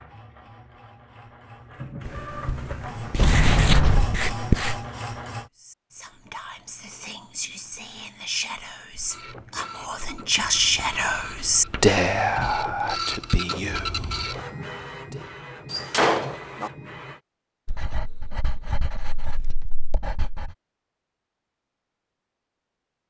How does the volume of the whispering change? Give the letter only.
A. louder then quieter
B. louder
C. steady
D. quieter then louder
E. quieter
A.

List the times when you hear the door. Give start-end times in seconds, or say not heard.
3.1-4.2, 15.7-16.7.